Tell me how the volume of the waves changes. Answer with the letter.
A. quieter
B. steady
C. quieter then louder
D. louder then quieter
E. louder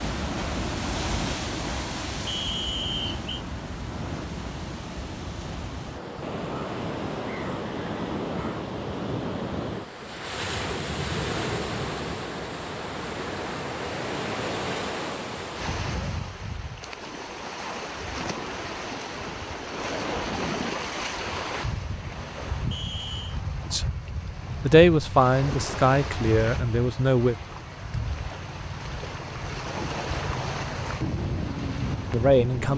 B.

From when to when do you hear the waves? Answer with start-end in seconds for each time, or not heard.
0.0-32.7.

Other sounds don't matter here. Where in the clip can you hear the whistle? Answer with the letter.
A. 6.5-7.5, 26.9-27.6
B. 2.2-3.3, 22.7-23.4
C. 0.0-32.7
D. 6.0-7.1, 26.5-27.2
B.